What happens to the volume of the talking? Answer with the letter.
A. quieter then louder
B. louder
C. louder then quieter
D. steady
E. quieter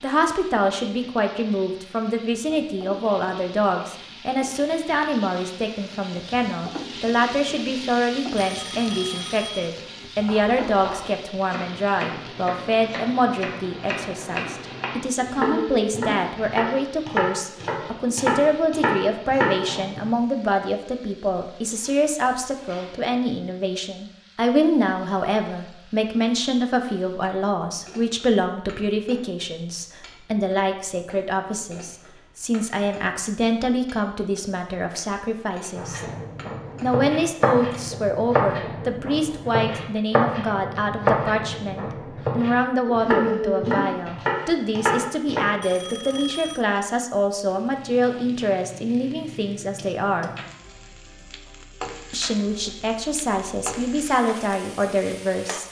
D.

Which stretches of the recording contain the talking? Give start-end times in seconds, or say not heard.
0.0-36.0, 36.8-50.3, 52.1-55.6.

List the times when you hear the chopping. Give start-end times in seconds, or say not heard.
10.2-20.0, 35.8-45.5.